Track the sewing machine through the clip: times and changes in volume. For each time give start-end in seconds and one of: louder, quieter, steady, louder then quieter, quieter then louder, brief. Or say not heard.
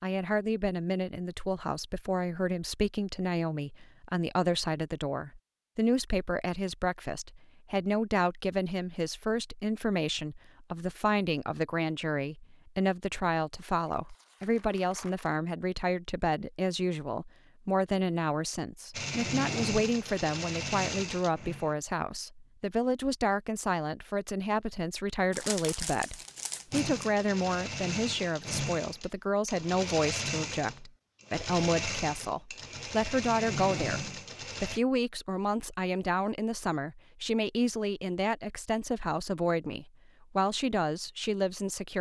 18.9-21.8 brief
26.7-34.8 steady.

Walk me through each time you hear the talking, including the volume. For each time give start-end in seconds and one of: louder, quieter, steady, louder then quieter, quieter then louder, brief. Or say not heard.
0.0-41.9 steady.